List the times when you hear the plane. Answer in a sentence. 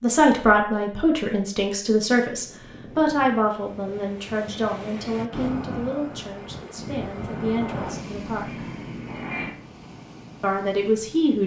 The plane can be heard from 5.2 to 9.6 s.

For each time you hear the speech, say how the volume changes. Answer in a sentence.
You can hear the speech from 0.0 to 8.7 s, getting quieter; and briefly from 10.4 to 11.4 s.